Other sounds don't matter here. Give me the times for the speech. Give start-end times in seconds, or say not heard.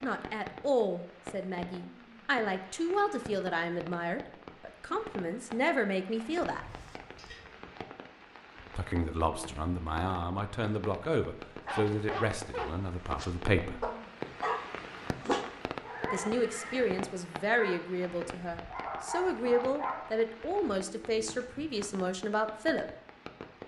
0.0-6.6, 8.8-13.8, 16.1-22.9.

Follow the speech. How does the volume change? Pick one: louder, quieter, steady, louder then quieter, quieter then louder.
steady.